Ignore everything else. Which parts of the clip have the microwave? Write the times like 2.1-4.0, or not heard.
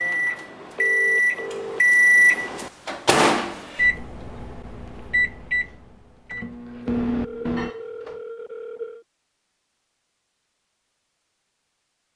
0.0-8.2.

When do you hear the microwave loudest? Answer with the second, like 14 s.
2 s.